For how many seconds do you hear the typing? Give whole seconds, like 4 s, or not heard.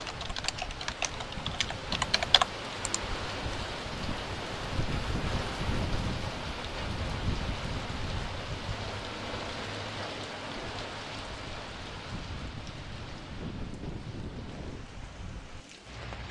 3 s.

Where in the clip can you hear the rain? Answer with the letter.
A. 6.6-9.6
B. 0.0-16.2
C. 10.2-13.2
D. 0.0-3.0
B.